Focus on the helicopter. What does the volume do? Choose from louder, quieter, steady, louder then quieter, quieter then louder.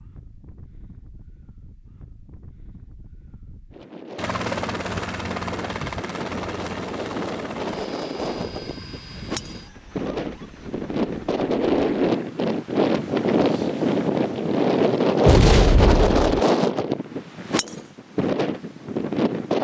quieter.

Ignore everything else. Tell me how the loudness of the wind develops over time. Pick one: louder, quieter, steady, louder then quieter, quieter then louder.
louder.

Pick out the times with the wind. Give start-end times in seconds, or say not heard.
0.0-19.6.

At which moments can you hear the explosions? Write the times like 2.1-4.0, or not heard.
15.2-16.2.